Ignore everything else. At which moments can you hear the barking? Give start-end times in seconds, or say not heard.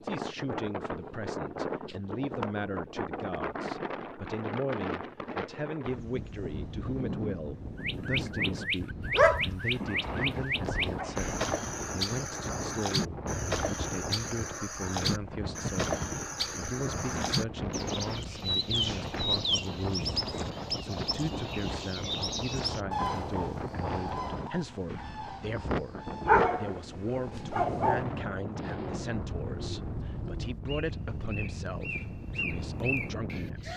9.2-11.4, 26.2-28.1.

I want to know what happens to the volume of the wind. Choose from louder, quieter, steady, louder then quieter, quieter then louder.
steady.